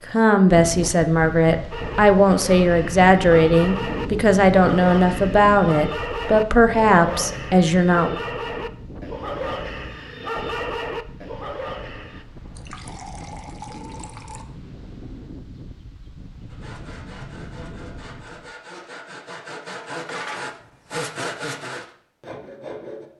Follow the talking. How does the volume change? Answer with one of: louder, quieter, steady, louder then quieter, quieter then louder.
steady.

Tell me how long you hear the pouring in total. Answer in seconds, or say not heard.
2 s.